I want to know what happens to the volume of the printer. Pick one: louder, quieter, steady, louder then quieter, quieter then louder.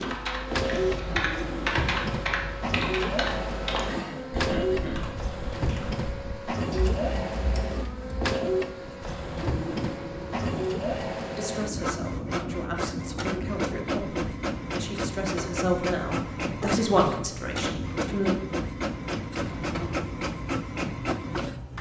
steady.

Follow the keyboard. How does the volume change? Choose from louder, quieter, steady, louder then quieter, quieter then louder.
quieter.